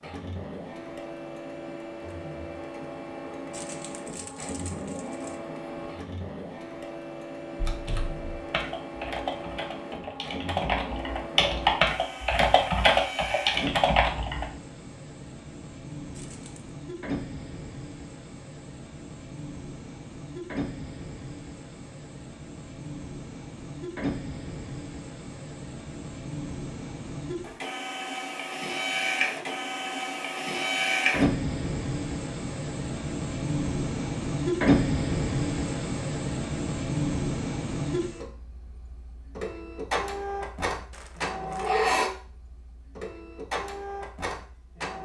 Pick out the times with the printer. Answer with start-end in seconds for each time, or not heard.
0.0-45.0.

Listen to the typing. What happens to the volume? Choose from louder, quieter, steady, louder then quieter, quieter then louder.
louder.